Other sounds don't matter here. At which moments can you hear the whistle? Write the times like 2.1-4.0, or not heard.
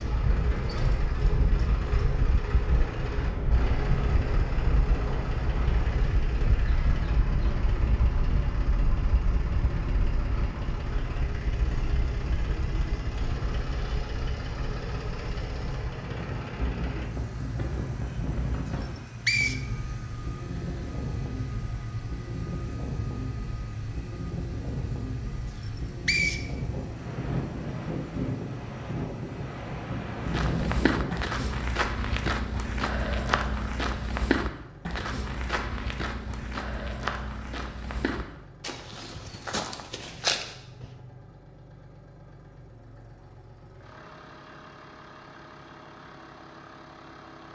18.8-19.6, 25.6-26.4.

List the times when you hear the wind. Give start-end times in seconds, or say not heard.
0.0-31.1.